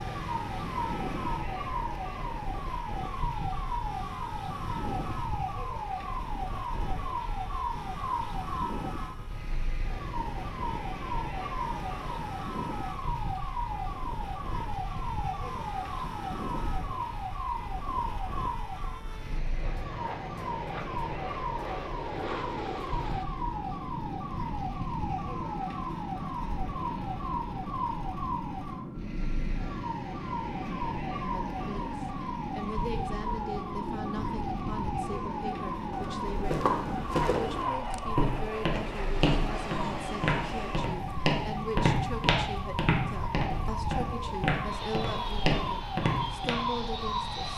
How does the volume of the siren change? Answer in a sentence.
The volume of the siren stays about the same.